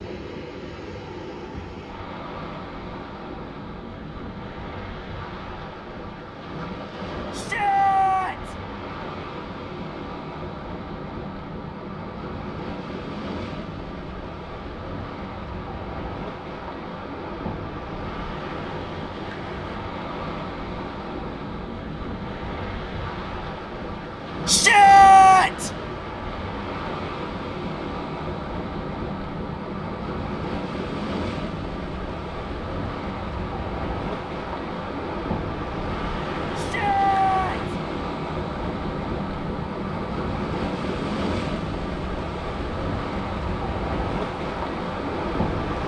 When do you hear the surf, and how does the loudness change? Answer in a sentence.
The surf can be heard from 0.0 to 45.8 s, getting louder.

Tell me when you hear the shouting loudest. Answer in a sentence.
The loudest moment of the shouting is at 25 seconds.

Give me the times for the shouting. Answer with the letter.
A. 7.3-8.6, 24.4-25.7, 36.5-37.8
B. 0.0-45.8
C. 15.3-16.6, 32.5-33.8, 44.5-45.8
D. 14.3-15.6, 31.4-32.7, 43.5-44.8
A.